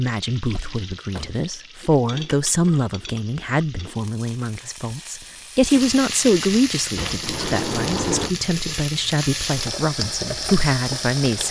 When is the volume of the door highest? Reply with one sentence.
The loudest moment of the door is at 8 seconds.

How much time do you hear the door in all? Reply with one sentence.
The door can be heard for 3 seconds in total.